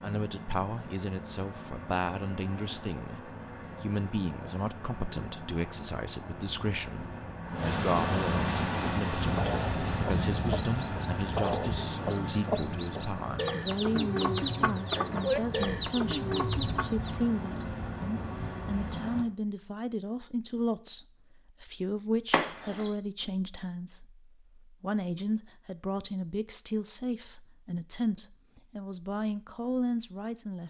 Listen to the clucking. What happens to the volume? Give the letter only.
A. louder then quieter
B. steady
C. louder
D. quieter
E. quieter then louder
C.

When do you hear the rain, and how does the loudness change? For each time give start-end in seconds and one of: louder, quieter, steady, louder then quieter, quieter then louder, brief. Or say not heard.
not heard.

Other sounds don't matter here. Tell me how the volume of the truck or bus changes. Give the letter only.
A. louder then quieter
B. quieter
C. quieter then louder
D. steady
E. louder
A.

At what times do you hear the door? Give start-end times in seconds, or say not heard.
22.3-22.9.